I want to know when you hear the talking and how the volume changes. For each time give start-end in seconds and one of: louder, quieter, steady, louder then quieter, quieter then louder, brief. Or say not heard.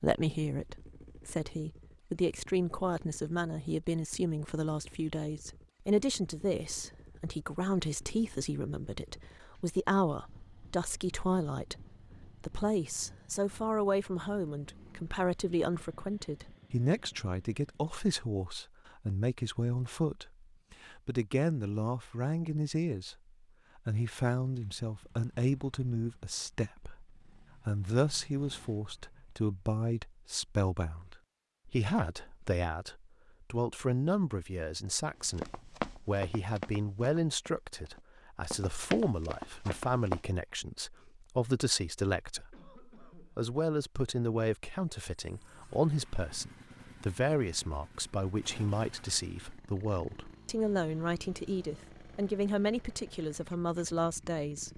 0.0-23.1 steady
23.8-54.7 steady.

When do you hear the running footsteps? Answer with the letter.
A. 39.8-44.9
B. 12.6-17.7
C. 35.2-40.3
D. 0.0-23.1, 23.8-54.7
C.